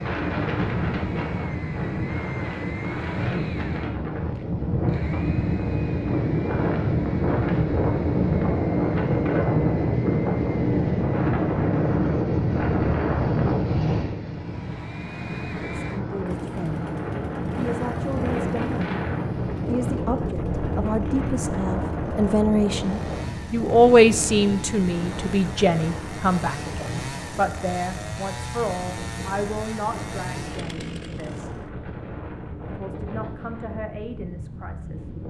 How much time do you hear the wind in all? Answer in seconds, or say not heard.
35 s.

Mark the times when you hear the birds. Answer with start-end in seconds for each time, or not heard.
not heard.